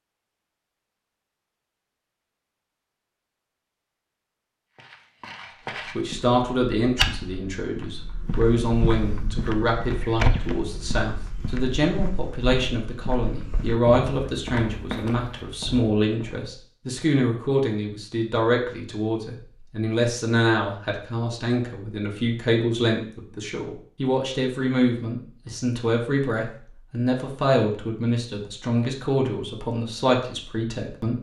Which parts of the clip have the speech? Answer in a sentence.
The speech can be heard from 6.0 to 31.1 s.